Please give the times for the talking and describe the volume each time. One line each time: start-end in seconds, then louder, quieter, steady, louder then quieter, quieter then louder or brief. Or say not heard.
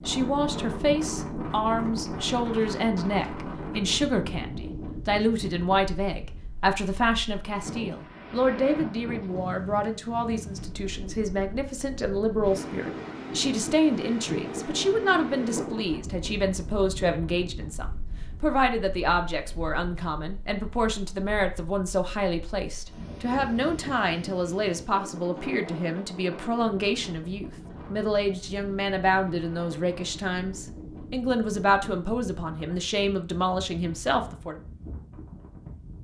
0.1-34.5 steady.